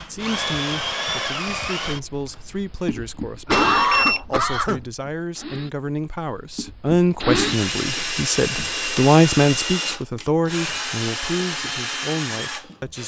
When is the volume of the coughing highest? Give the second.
4 s.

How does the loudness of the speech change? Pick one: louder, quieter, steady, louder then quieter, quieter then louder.
louder then quieter.